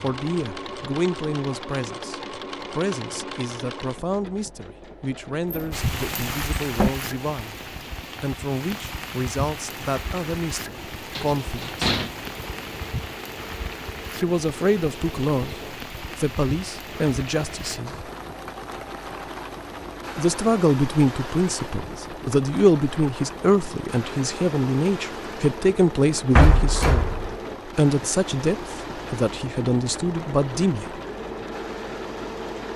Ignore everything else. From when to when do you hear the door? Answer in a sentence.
You can hear the door from 5.5 to 6.9 s, from 11.2 to 12.2 s and from 26.4 to 27.4 s.